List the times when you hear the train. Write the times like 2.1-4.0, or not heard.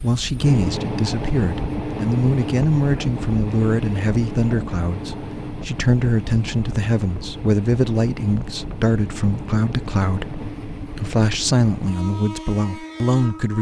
0.0-13.5.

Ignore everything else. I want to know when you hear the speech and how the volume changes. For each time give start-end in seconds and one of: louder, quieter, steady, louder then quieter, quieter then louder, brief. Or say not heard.
0.0-13.5 steady.